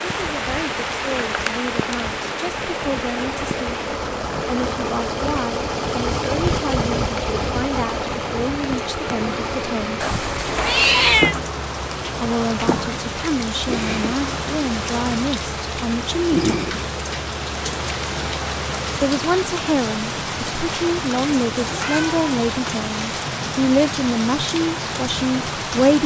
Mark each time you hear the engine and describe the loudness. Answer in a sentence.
The engine can be heard from 0.0 to 19.1 s, getting louder then quieter.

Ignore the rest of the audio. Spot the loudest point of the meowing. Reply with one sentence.
The volume of the meowing peaks at 11 seconds.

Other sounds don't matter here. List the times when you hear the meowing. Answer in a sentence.
You can hear the meowing from 10.0 to 11.3 s and from 21.6 to 22.2 s.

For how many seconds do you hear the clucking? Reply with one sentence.
The clucking can't be heard in this clip.